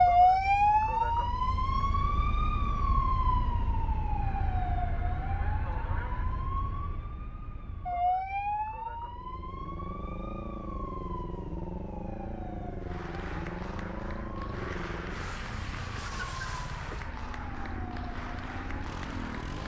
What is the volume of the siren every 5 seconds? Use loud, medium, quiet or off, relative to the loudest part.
loud, medium, quiet, quiet.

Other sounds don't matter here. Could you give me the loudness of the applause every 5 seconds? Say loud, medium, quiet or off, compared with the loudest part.
off, off, loud, loud.